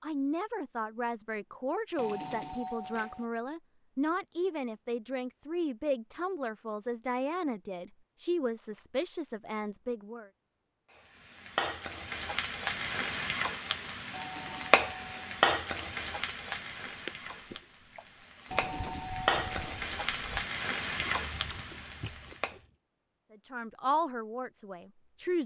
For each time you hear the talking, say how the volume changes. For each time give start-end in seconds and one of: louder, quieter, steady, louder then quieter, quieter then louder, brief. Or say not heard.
0.0-10.3 steady
23.3-25.4 brief.